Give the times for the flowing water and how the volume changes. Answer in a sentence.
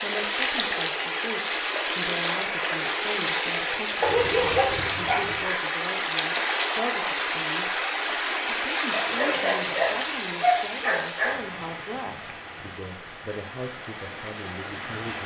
You can hear the flowing water from 0.0 to 15.2 s, getting quieter.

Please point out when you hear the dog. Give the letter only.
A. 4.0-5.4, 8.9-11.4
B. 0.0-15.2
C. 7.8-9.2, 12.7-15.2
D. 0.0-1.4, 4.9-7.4
A.